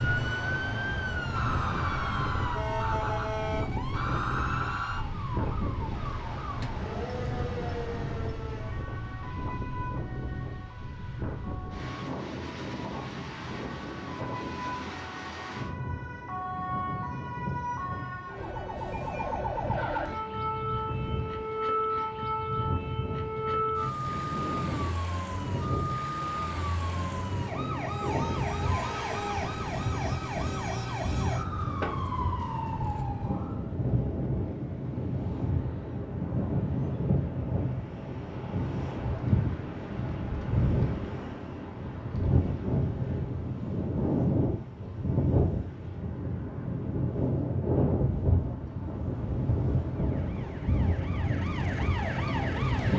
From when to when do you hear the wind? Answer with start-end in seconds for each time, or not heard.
0.0-52.9.